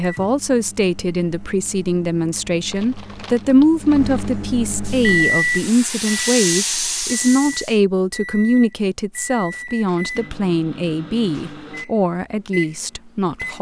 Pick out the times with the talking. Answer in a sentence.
You can hear the talking from 0.0 to 13.5 s.